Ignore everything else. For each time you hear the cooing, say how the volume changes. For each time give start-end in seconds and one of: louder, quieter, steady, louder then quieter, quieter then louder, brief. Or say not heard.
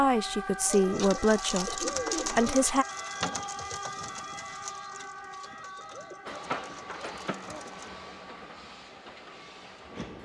0.7-7.9 quieter.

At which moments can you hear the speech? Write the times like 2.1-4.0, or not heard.
0.0-2.9.